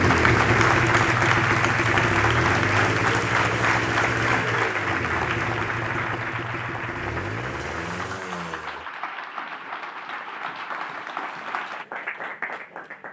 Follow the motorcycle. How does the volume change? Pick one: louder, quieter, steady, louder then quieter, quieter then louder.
quieter.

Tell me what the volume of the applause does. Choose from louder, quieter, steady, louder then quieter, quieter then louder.
quieter.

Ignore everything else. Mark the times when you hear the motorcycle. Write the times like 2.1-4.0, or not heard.
0.0-8.8.